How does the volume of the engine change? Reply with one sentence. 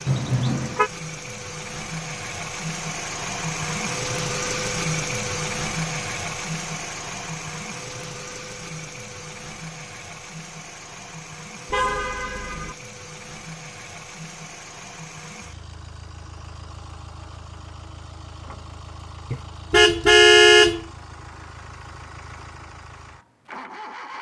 The volume of the engine goes down.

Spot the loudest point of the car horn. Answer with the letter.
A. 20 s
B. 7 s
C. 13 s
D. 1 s
A.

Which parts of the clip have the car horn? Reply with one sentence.
You can hear the car horn from 0.1 to 0.9 s, from 11.7 to 12.8 s and from 19.3 to 20.9 s.